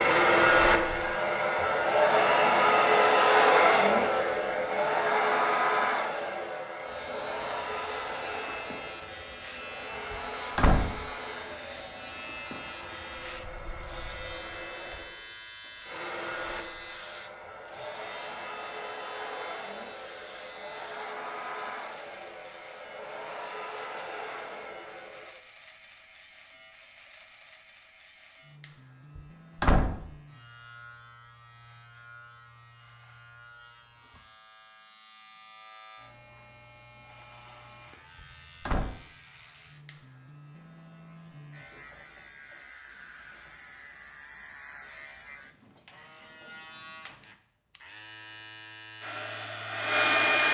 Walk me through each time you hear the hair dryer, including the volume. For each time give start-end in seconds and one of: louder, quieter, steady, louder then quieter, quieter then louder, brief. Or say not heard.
0.0-25.3 quieter
49.0-50.4 brief.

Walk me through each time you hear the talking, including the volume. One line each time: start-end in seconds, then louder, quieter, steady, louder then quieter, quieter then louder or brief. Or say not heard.
not heard.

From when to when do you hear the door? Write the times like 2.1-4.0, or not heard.
10.1-11.0, 29.1-30.1, 38.2-39.0.